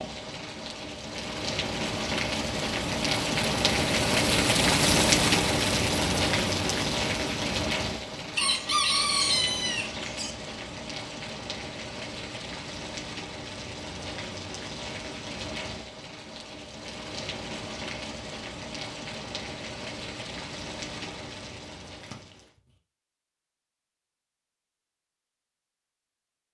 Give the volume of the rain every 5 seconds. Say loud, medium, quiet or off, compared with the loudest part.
loud, loud, medium, medium, quiet, off.